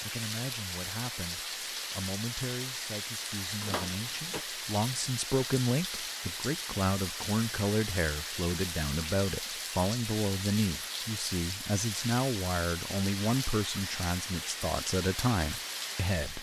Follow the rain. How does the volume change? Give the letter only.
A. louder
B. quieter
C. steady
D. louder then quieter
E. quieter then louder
C.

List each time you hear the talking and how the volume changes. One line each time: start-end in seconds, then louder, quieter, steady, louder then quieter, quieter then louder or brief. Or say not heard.
0.0-16.3 louder.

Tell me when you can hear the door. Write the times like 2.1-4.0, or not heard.
3.6-4.5.